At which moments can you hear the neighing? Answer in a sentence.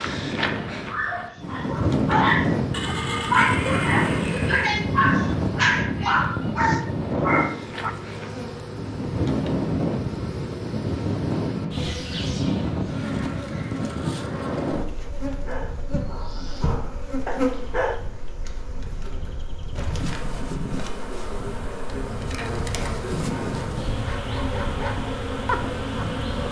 The neighing can be heard from 2.7 to 4.7 s.